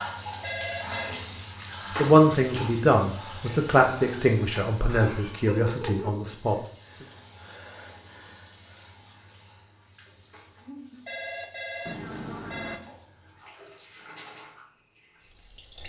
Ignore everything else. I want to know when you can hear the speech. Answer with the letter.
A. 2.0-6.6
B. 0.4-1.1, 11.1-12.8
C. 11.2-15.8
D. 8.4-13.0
A.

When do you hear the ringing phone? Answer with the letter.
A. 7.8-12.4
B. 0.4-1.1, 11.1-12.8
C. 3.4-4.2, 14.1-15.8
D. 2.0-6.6
B.